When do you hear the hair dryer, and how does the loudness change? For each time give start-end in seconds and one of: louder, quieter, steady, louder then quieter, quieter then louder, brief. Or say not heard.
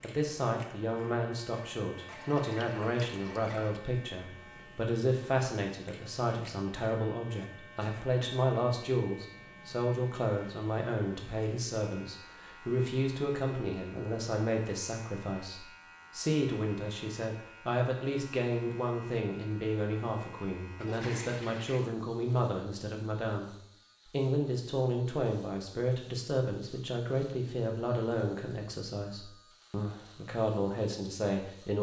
not heard.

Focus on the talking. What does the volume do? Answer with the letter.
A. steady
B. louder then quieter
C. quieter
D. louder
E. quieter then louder
A.